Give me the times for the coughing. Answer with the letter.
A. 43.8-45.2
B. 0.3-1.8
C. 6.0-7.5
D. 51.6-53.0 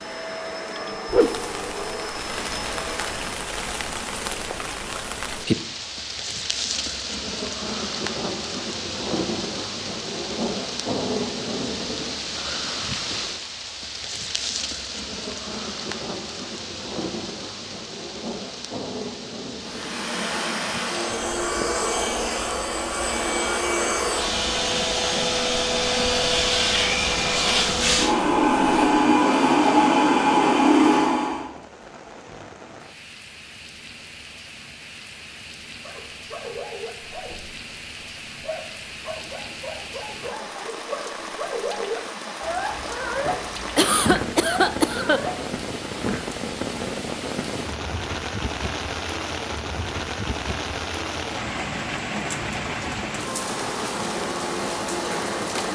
A.